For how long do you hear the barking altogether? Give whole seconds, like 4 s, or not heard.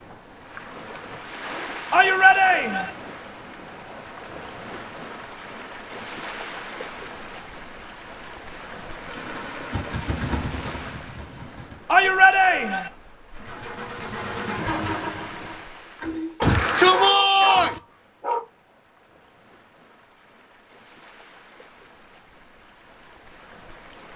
2 s.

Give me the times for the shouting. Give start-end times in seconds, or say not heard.
1.9-2.9, 11.8-12.9, 16.4-17.8.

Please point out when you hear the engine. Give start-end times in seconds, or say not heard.
9.0-11.8, 13.3-16.4.